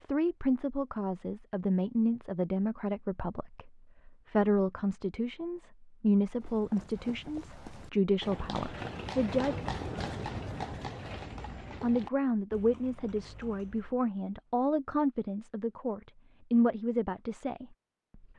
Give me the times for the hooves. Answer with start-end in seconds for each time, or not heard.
6.2-14.0.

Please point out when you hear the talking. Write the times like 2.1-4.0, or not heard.
0.1-9.6, 11.8-17.6.